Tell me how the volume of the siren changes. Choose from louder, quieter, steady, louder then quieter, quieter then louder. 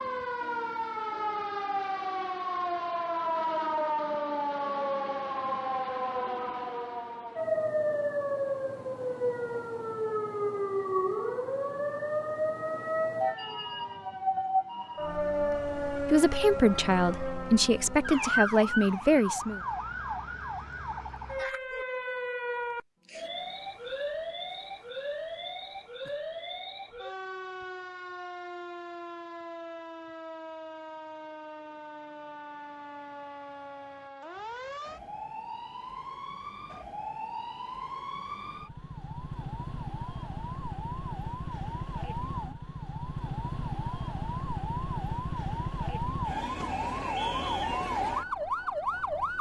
quieter then louder.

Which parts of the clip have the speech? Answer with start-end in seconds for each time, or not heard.
16.1-19.6.